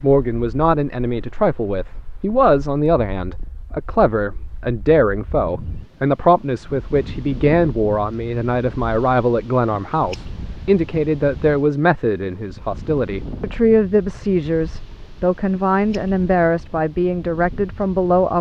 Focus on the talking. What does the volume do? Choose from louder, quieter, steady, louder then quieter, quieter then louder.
steady.